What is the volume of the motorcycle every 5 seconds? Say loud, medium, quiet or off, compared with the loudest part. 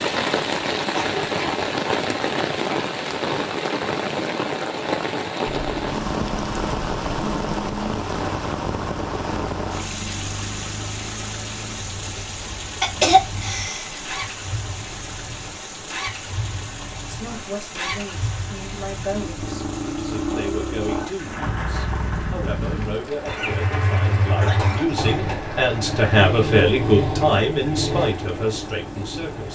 off, medium, medium, medium, loud, loud.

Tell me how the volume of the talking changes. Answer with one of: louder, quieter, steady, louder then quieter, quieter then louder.
louder.